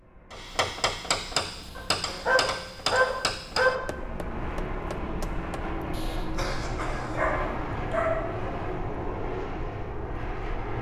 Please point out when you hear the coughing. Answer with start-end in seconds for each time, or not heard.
1.6-2.5, 5.9-7.3.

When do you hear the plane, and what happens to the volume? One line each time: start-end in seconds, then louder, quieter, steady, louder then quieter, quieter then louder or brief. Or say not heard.
0.0-10.7 louder.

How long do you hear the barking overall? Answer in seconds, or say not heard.
3 s.